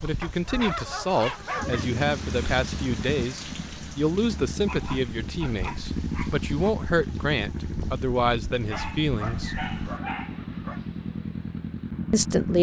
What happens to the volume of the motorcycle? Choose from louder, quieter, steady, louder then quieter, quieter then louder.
steady.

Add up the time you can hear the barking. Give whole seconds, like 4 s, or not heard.
6 s.